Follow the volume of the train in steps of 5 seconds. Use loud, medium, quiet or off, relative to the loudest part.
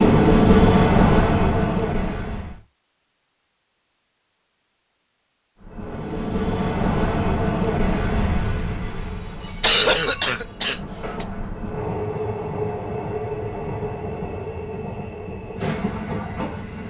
loud, medium, quiet, quiet.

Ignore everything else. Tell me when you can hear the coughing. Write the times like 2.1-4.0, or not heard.
9.6-11.2.